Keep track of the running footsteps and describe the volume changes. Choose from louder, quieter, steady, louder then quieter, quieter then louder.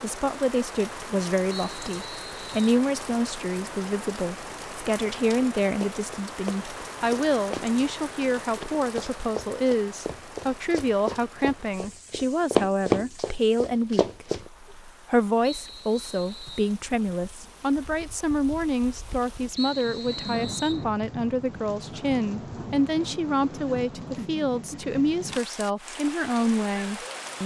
louder.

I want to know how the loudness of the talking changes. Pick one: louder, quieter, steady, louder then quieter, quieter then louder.
steady.